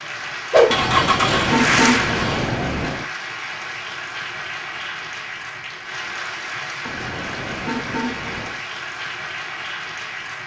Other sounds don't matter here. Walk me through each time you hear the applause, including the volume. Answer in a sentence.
You can hear the applause from 0.0 to 10.4 s, getting quieter.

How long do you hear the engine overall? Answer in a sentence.
The engine can be heard for 2 seconds in total.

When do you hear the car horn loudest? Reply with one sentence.
The loudest moment of the car horn is at 2 seconds.